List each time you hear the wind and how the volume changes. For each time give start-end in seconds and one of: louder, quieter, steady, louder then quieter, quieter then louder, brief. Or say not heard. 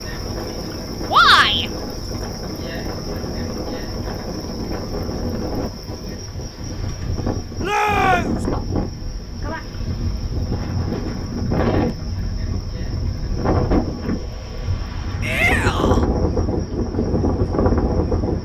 0.0-18.3 louder.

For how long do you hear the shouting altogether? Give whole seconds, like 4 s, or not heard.
2 s.